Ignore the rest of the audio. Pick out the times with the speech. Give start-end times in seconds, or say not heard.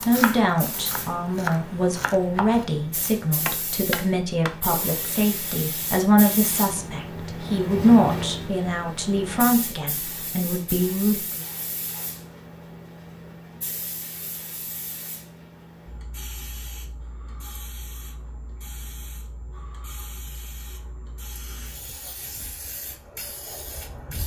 0.0-11.4.